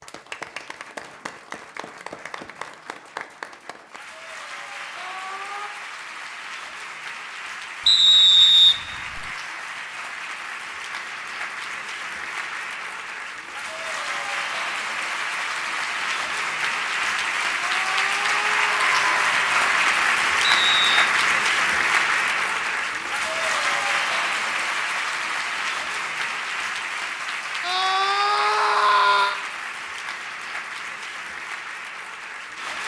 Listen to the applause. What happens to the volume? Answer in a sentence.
The loudness of the applause goes up, then down.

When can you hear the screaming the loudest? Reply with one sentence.
The loudest moment of the screaming is at 29 seconds.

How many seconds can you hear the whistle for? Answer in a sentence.
You can hear the whistle for 2 seconds altogether.